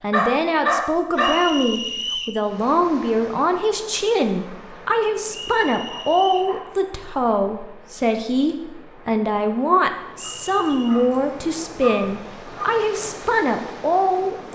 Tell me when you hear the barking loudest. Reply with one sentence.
The loudest moment of the barking is at 1 second.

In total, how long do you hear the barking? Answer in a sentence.
The barking can be heard for 6 seconds in total.